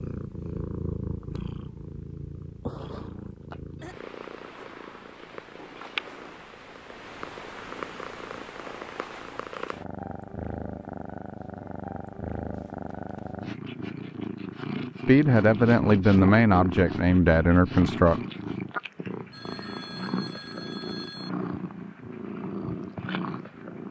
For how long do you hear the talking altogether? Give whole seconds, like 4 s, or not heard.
3 s.